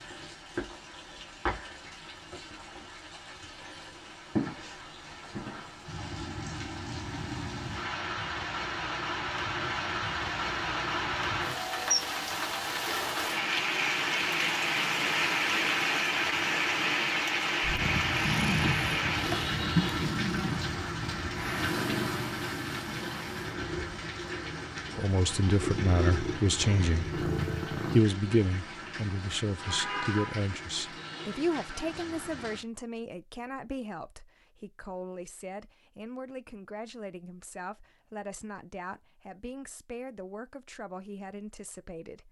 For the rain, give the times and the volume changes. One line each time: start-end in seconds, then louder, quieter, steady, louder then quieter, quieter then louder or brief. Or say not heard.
0.0-32.6 louder then quieter.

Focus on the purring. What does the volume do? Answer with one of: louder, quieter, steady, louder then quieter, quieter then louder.
quieter then louder.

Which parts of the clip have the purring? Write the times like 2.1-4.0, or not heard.
17.6-28.0.